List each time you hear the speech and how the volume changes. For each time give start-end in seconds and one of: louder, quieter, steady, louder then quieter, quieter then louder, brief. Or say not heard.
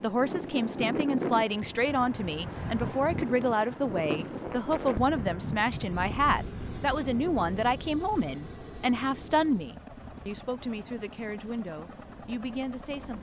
0.0-13.1 quieter.